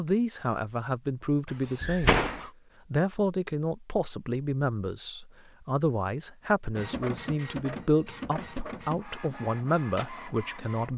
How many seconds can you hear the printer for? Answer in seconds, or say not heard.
4 s.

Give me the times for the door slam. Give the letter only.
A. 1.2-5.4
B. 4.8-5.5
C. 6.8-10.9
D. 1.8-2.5
D.